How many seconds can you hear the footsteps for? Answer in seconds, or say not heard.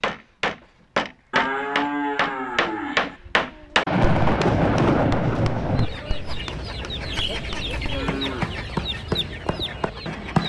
not heard.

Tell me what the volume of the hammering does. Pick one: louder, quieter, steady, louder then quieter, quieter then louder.
quieter then louder.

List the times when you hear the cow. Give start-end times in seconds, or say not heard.
1.3-3.2, 7.1-8.6.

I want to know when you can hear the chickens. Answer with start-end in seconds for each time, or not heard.
5.6-10.4.